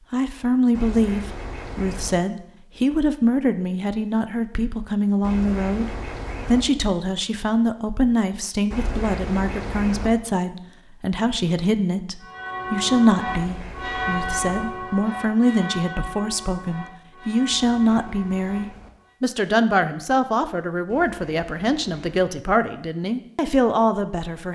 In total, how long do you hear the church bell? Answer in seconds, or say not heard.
7 s.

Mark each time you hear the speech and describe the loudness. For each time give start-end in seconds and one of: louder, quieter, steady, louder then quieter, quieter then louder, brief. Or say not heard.
0.1-24.5 steady.